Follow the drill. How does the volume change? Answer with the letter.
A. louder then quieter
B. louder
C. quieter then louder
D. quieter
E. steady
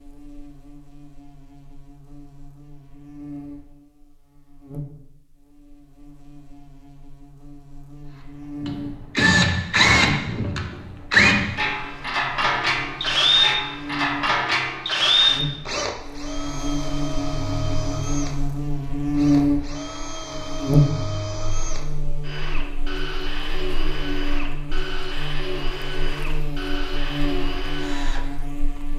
D.